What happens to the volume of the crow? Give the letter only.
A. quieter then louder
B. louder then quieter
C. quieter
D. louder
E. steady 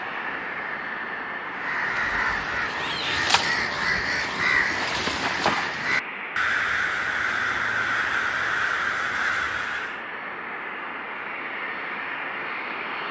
E.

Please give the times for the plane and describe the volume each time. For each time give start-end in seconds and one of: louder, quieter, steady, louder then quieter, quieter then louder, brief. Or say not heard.
0.0-13.0 steady.